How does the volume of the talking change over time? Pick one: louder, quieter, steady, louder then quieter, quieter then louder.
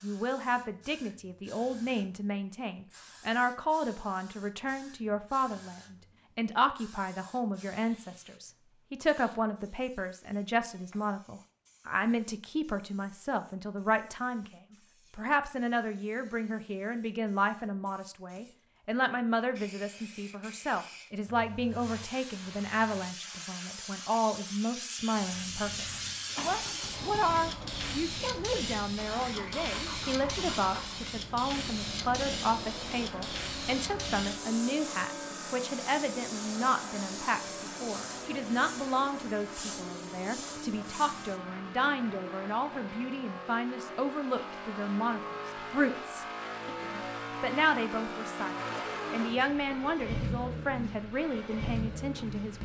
steady.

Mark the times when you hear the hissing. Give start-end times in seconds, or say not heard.
0.0-41.4.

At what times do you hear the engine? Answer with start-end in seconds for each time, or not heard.
25.1-52.6.